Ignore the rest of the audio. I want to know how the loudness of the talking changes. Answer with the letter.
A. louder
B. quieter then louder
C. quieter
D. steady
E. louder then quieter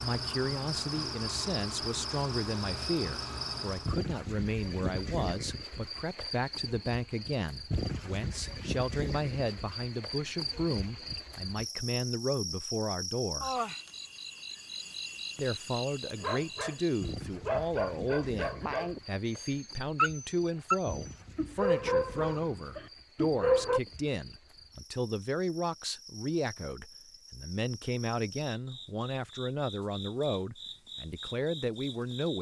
D.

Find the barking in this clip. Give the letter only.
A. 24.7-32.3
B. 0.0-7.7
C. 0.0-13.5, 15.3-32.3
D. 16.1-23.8
D.